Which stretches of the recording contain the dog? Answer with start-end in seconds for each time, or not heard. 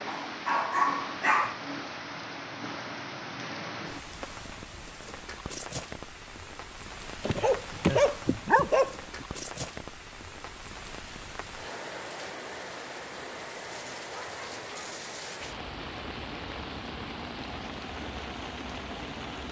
0.1-1.6, 7.2-9.2, 13.6-15.6.